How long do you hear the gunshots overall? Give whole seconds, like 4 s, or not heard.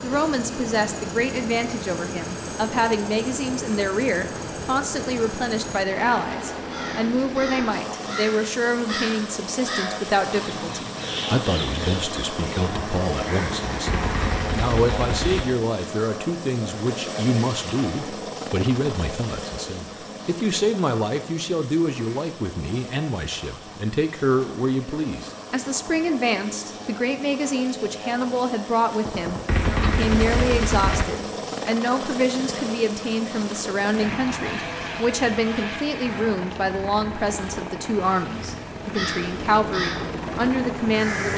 4 s.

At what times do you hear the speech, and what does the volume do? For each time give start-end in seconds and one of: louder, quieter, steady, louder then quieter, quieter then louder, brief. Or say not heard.
0.0-41.3 steady.